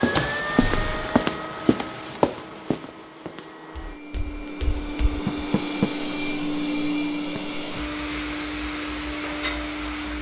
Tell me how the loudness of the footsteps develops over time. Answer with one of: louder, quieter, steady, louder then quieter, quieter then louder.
quieter.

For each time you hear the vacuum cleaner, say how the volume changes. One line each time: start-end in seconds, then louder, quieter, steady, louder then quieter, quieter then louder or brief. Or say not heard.
0.0-10.1 quieter then louder.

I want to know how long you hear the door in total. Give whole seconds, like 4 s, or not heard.
2 s.